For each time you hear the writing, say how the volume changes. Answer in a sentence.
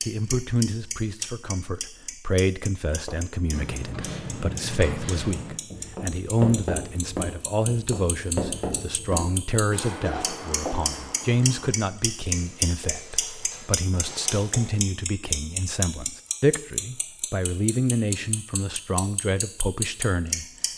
The writing can be heard from 3.0 to 14.8 s, getting quieter.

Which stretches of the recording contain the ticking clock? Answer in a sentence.
You can hear the ticking clock from 0.0 to 20.7 s.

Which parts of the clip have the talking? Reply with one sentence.
You can hear the talking from 0.0 to 20.4 s.